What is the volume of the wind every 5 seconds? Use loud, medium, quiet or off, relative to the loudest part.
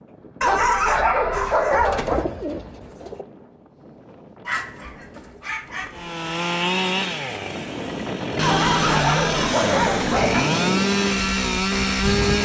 quiet, loud, loud.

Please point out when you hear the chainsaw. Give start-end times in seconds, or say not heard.
5.9-12.4.